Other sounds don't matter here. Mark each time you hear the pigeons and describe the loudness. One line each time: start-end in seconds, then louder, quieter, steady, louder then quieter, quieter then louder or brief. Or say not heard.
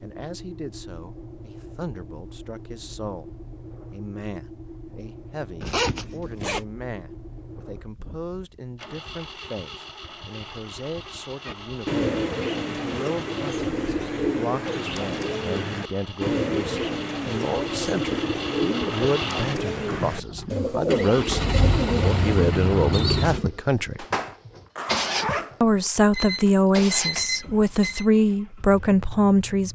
11.4-23.4 steady.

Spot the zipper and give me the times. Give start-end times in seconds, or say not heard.
5.6-6.7, 23.9-25.9.